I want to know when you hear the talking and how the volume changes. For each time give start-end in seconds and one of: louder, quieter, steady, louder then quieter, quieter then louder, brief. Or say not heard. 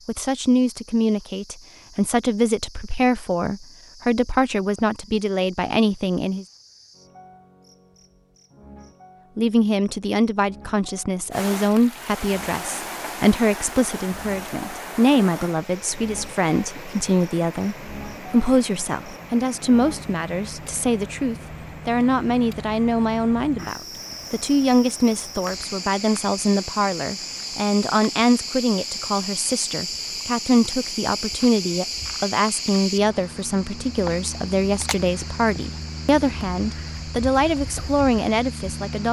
0.1-6.5 steady
9.3-39.0 steady.